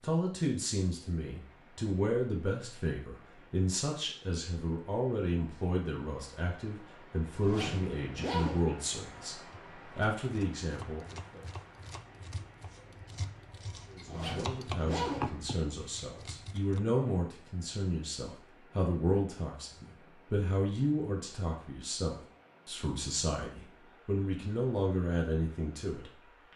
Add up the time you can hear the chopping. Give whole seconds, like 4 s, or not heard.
7 s.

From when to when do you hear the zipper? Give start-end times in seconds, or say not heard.
7.4-8.7, 14.1-15.3.